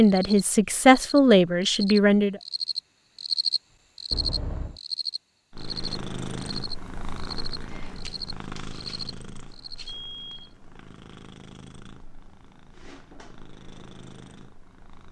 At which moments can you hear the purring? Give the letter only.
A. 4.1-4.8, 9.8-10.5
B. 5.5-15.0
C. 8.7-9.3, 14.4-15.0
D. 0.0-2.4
B.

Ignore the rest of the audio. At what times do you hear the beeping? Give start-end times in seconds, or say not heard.
4.1-4.8, 9.8-10.5.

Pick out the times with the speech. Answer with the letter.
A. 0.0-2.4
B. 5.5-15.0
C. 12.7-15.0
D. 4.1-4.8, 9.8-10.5
A.